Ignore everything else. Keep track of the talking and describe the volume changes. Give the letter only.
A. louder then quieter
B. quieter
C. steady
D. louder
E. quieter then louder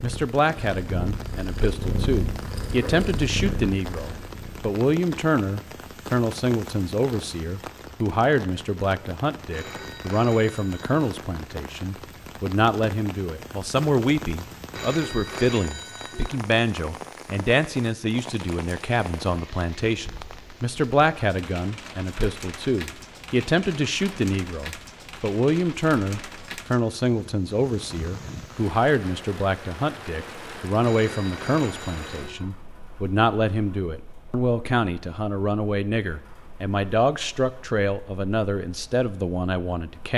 C.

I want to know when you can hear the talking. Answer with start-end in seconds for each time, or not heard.
0.0-40.1.